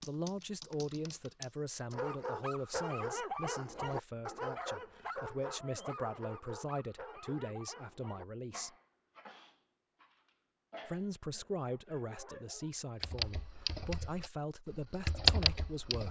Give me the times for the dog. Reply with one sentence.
You can hear the dog from 1.9 to 12.7 s.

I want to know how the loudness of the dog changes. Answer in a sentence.
The loudness of the dog goes down.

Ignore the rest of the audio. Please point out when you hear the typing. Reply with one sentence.
You can hear the typing from 0.0 to 1.9 s and from 13.0 to 16.0 s.